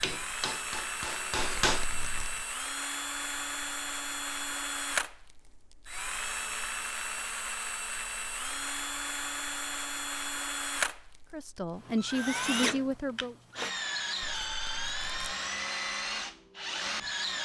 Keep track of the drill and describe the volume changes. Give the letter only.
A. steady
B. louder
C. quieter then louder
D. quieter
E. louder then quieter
A.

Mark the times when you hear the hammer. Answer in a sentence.
You can hear the hammer from 0.0 to 1.9 s.